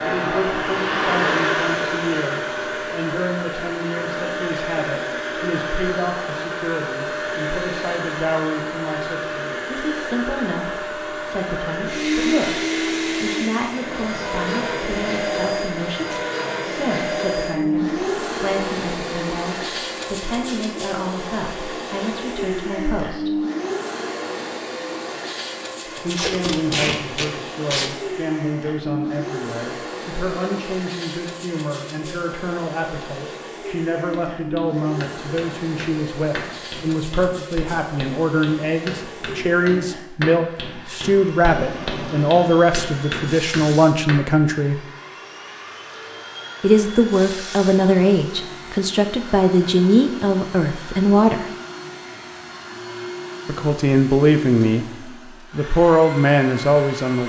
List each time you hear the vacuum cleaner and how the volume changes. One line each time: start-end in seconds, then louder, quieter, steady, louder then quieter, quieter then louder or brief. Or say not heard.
0.0-57.2 quieter.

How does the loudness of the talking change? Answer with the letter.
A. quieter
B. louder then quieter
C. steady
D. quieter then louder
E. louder
E.